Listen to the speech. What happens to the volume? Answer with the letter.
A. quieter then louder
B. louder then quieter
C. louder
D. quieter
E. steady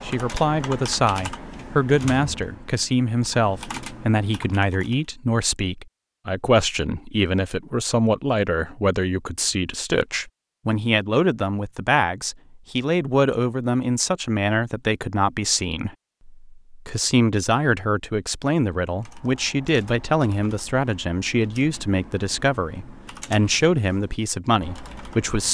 E.